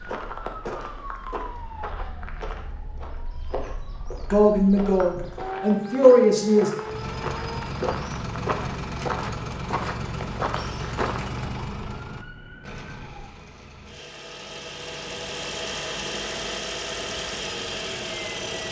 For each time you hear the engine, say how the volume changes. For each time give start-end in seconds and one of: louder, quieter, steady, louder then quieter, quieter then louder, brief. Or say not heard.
6.8-18.6 quieter then louder.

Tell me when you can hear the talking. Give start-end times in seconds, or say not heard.
4.3-6.7.